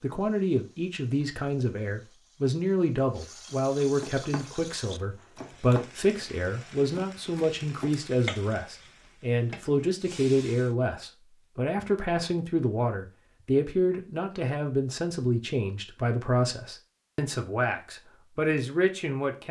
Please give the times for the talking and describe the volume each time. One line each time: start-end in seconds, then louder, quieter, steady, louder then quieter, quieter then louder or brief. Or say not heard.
0.0-19.4 steady.